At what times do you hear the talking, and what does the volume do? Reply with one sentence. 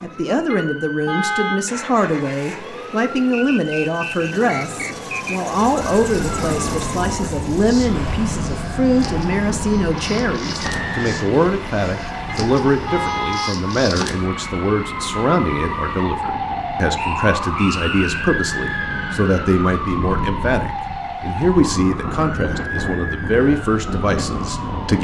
The talking can be heard from 0.0 to 25.0 s, at a steady volume.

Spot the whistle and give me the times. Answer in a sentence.
You can hear the whistle from 3.3 to 5.4 s, from 10.6 to 11.2 s and from 16.9 to 18.4 s.